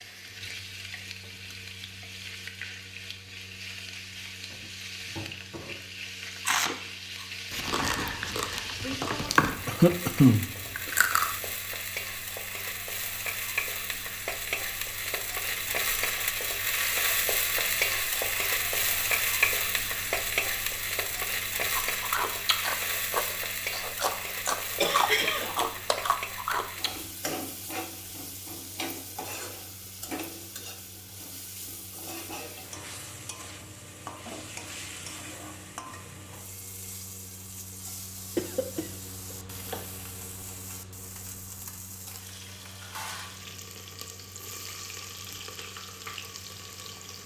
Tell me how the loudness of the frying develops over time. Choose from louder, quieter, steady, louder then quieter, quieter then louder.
louder then quieter.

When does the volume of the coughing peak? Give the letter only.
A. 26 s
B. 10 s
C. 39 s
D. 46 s
B.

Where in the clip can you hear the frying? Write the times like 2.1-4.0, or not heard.
0.0-47.2.